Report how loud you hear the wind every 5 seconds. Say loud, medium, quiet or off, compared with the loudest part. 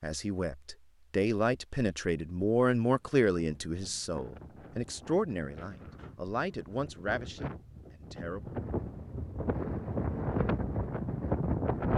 quiet, medium, loud.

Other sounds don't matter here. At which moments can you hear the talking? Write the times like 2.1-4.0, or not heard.
0.0-8.6.